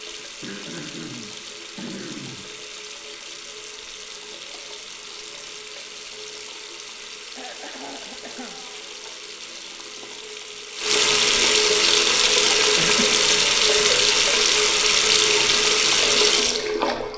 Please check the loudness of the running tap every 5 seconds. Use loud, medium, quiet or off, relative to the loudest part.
quiet, quiet, loud, loud.